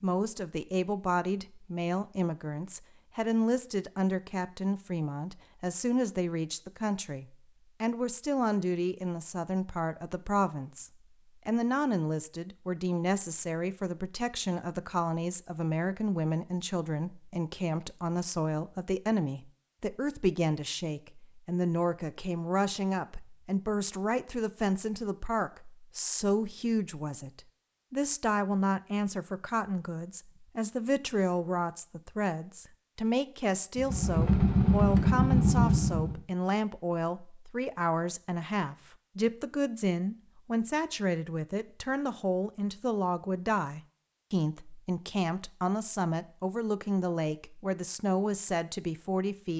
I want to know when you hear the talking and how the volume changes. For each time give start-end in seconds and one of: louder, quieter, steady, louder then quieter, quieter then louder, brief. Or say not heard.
0.0-49.5 steady.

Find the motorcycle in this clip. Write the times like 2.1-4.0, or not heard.
33.8-36.2.